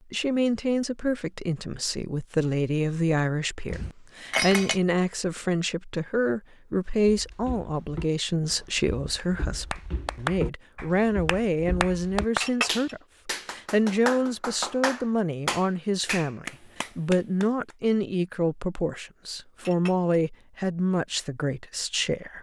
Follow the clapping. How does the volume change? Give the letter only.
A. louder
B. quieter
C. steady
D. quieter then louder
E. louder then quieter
C.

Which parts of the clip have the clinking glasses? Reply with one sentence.
You can hear the clinking glasses from 3.6 to 4.8 s, from 12.4 to 12.9 s and from 19.6 to 20.1 s.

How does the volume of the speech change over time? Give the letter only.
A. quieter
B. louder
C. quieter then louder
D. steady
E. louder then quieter
D.